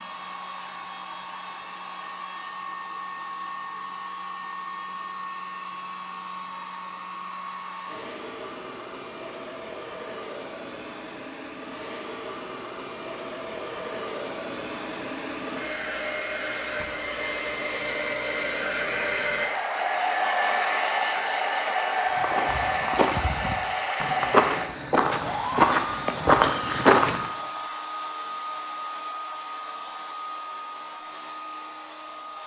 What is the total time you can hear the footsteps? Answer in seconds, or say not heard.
5 s.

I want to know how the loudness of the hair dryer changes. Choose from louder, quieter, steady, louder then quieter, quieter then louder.
louder then quieter.